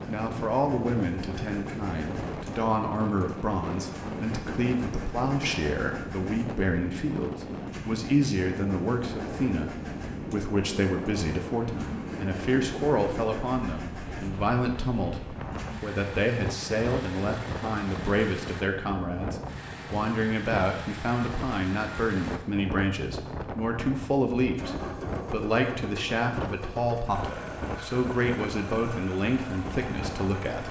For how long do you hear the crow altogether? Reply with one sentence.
You can't hear the crow here.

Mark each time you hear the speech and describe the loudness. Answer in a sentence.
The speech can be heard from 0.1 to 30.6 s, at a steady volume.